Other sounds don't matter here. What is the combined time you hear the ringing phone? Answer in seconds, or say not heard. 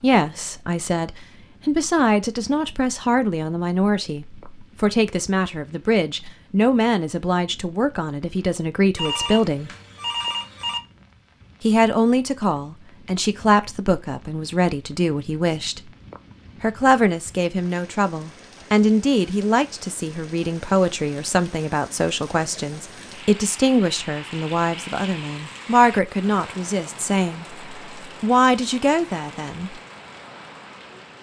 2 s.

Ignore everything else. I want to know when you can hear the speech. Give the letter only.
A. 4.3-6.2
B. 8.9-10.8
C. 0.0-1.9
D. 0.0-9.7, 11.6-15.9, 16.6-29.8
D.